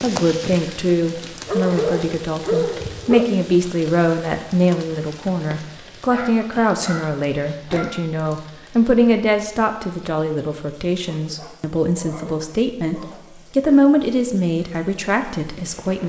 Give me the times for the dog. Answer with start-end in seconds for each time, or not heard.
1.4-3.2, 6.1-8.0, 11.0-13.8.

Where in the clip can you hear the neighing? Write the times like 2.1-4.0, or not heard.
not heard.